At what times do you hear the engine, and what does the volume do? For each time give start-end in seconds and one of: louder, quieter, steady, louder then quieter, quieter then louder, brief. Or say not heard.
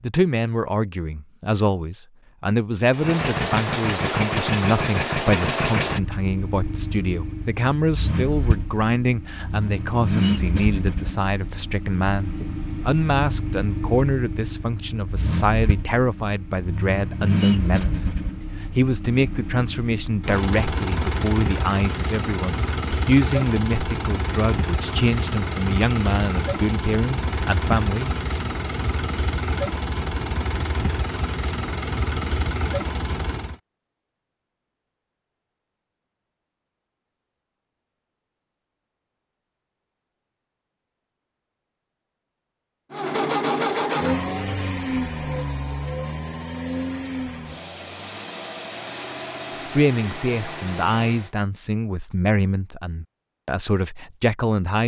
2.9-33.5 steady
42.9-51.3 quieter.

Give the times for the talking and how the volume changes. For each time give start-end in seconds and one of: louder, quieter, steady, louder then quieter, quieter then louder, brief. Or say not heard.
0.0-28.1 steady
49.6-54.8 quieter then louder.